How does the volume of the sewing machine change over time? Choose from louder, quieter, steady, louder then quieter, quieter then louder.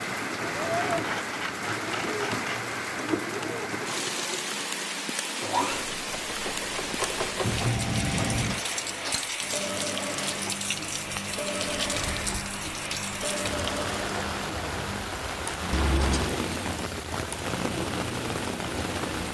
steady.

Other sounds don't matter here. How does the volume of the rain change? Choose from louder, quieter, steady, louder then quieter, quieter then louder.
steady.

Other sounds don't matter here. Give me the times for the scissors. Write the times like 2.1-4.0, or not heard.
0.7-2.8, 7.4-8.6, 15.7-16.4.